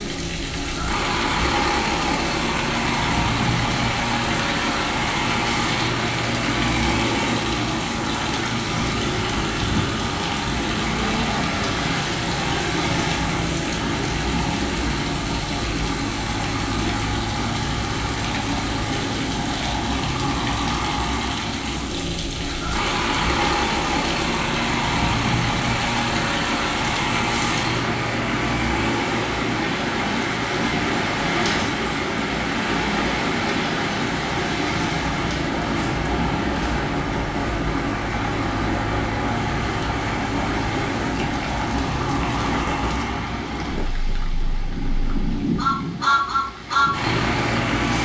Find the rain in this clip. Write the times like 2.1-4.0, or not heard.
0.0-48.0.